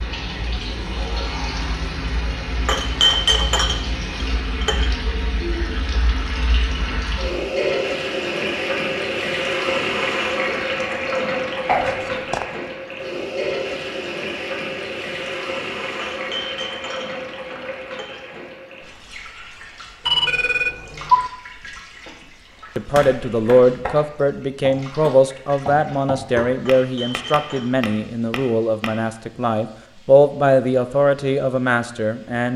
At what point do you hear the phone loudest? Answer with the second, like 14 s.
21 s.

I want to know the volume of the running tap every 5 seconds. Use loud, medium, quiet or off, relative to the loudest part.
medium, loud, loud, medium, quiet, quiet, quiet.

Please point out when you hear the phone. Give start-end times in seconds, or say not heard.
11.7-12.4, 20.1-21.2.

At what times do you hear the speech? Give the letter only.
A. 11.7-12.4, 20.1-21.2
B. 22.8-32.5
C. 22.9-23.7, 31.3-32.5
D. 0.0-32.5
B.